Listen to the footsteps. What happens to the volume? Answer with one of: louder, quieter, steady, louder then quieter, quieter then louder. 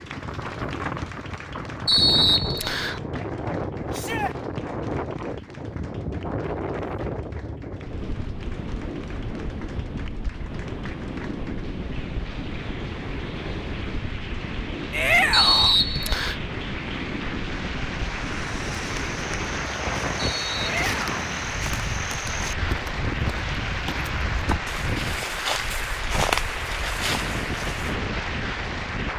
louder.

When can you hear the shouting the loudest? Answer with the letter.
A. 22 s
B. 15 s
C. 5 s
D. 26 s
B.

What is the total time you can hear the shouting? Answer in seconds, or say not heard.
2 s.